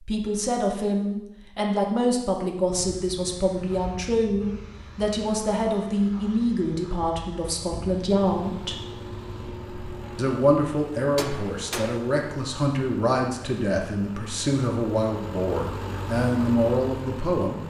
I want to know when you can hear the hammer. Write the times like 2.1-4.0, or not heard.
11.2-12.0.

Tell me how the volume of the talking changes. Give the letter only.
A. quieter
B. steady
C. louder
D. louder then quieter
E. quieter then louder
B.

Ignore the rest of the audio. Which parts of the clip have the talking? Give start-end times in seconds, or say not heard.
0.1-8.8, 10.2-17.6.